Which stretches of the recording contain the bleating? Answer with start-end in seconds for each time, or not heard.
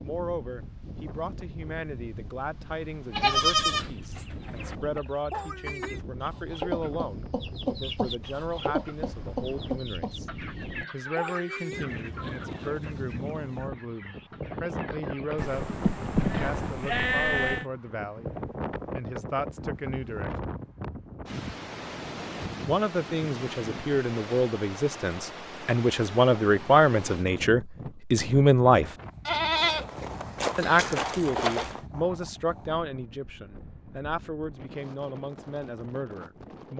3.1-4.8, 15.3-17.6, 29.2-31.8.